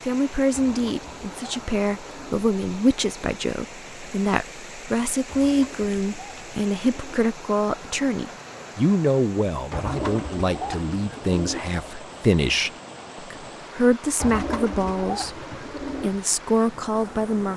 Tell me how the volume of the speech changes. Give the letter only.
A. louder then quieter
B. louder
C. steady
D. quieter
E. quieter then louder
C.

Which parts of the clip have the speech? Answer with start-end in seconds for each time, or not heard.
0.1-17.5.